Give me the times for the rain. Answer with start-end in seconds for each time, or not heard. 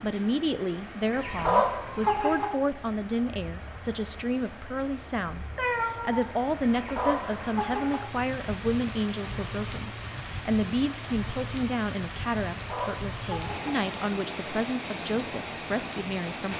0.0-16.5.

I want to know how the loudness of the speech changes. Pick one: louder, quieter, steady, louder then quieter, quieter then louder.
steady.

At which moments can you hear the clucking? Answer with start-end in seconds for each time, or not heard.
1.1-2.5, 6.6-8.0, 12.6-13.8.